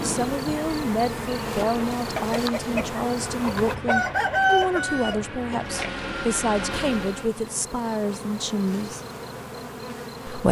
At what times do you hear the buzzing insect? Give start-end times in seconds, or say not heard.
0.0-3.8, 6.8-10.4.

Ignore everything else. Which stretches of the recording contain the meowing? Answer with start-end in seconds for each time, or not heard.
not heard.